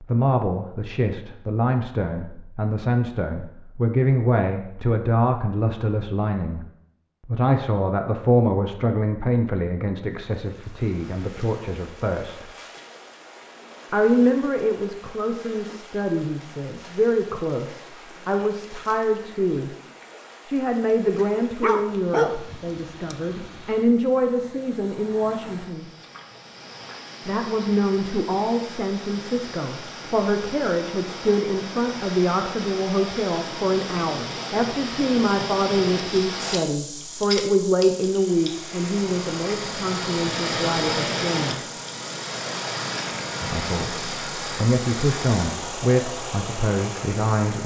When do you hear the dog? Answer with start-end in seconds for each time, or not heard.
21.1-23.1.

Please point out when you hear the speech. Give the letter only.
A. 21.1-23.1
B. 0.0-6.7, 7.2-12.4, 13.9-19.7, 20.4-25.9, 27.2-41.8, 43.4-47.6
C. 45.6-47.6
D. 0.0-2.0
B.